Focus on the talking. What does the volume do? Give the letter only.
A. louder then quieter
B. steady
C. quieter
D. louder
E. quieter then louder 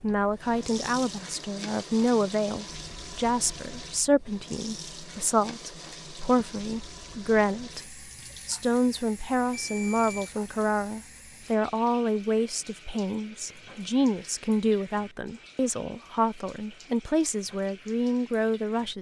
B.